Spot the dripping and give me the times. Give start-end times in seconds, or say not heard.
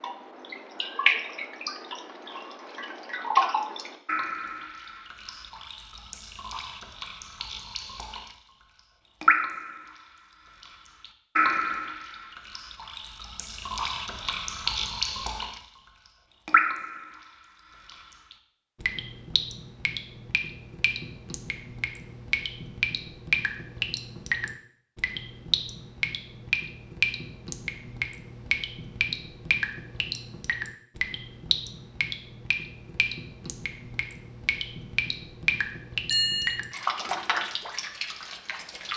0.0-8.3, 9.2-9.9, 10.6-15.6, 16.4-17.2, 17.9-38.9.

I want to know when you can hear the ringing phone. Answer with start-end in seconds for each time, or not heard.
36.1-36.8.